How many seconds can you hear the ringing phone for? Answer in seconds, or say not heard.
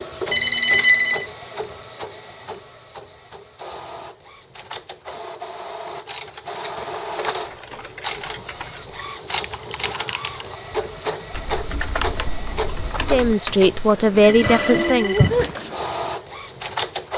2 s.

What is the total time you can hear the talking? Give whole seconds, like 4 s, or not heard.
2 s.